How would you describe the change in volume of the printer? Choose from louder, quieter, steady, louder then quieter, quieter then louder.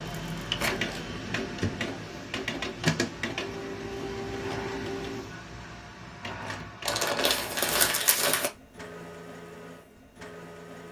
quieter.